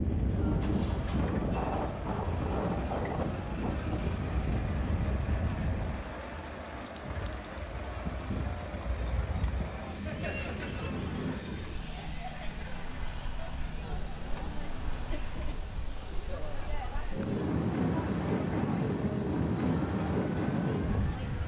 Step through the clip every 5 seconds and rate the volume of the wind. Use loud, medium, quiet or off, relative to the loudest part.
loud, medium, medium, loud, loud.